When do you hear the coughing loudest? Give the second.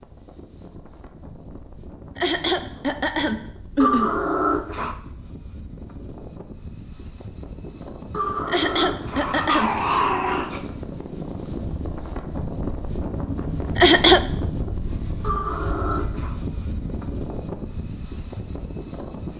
14 s.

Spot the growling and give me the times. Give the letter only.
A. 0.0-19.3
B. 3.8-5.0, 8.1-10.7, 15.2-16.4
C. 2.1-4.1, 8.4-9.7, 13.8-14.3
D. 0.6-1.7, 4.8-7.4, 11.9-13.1
B.